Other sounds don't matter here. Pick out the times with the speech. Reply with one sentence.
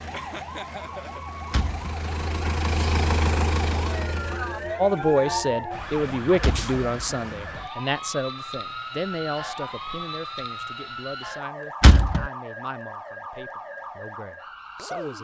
The speech can be heard from 4.8 to 15.1 s.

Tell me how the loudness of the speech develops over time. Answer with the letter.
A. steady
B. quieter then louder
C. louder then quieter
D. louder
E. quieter
E.